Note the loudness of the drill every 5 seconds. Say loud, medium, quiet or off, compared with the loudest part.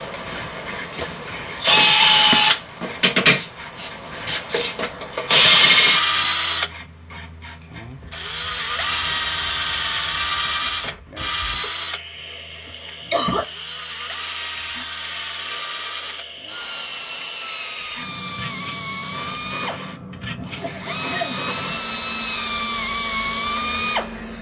loud, loud, medium, quiet, medium.